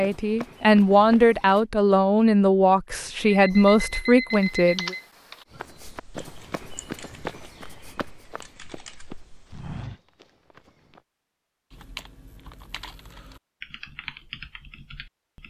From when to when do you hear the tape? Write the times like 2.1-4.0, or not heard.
not heard.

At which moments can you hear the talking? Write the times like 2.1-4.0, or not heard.
0.0-5.0.